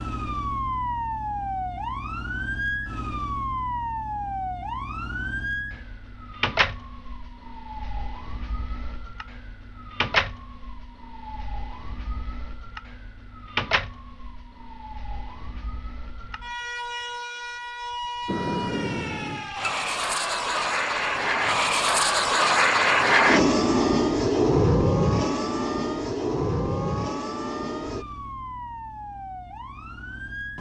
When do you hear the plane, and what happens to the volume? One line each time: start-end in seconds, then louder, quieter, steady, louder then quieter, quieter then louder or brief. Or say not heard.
18.2-28.1 louder then quieter.